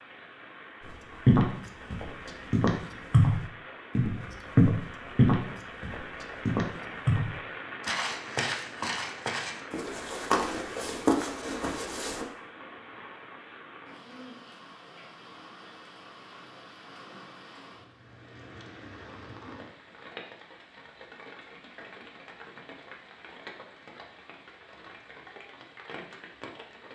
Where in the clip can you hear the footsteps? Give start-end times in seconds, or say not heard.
0.8-12.2.